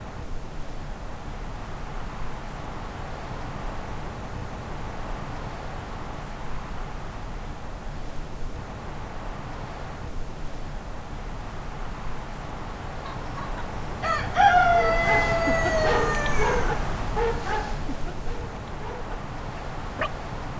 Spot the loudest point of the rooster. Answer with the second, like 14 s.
15 s.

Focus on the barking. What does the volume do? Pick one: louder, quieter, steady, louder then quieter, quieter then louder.
quieter.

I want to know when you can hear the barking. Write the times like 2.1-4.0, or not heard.
14.8-20.1.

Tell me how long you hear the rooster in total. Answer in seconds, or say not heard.
4 s.